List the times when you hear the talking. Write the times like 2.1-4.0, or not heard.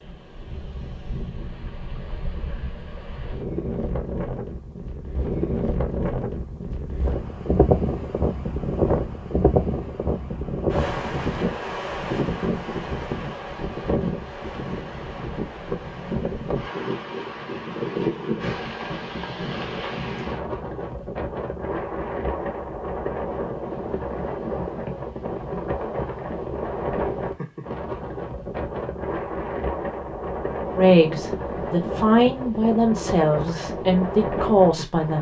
30.8-35.1.